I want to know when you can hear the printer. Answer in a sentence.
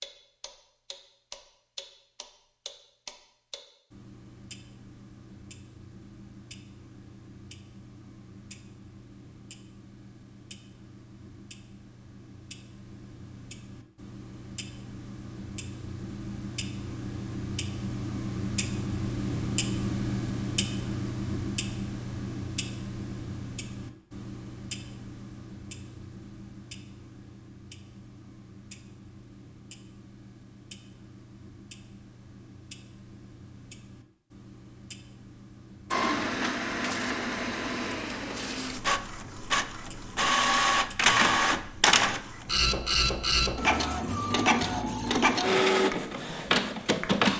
The printer can be heard from 35.9 to 47.3 s.